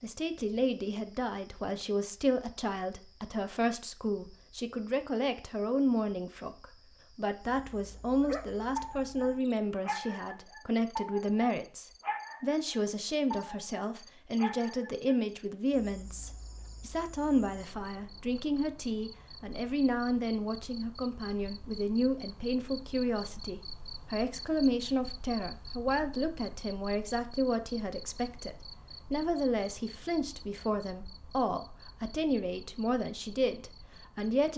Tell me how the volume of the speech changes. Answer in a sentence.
The volume of the speech stays about the same.